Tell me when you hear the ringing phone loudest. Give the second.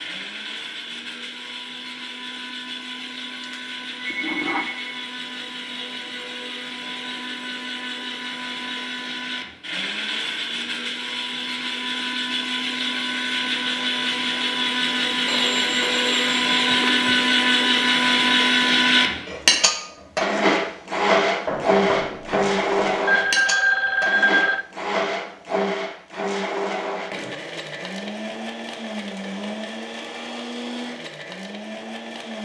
24 s.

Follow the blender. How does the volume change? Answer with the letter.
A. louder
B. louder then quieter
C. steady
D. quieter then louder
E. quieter
B.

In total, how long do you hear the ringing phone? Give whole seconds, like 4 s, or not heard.
5 s.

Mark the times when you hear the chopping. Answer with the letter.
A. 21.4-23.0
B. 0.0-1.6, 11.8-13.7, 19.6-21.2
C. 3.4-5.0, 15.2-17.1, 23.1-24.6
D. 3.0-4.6
A.